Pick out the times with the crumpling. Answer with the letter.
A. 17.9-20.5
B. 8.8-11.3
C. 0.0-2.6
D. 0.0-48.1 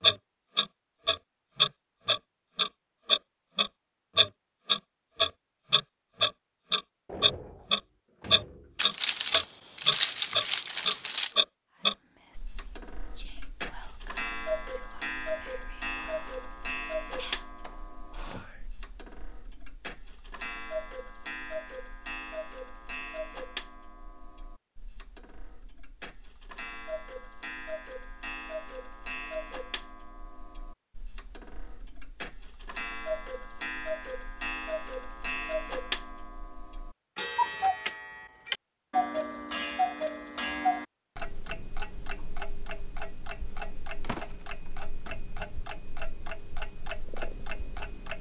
B.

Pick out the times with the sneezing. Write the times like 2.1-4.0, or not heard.
not heard.